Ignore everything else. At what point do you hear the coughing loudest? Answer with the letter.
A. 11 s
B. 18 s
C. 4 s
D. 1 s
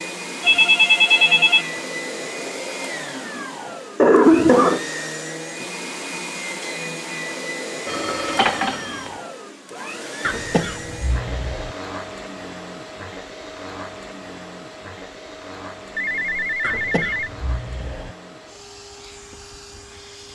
C.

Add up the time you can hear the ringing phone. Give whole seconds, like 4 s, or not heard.
4 s.